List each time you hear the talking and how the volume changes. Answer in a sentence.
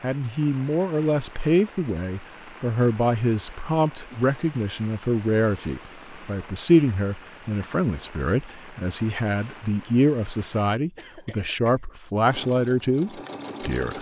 The talking can be heard from 0.0 to 13.9 s, at a steady volume.